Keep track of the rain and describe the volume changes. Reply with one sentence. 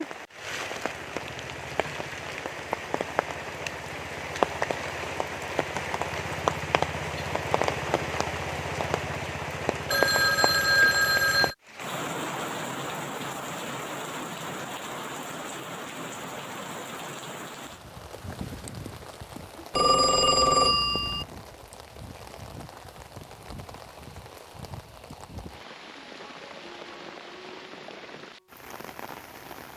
The loudness of the rain goes down.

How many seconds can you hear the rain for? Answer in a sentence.
You can hear the rain for 30 seconds altogether.